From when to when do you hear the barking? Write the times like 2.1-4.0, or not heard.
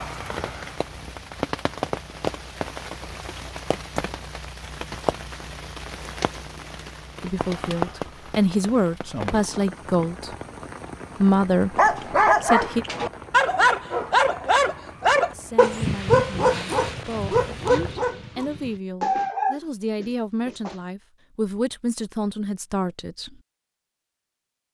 11.8-20.8.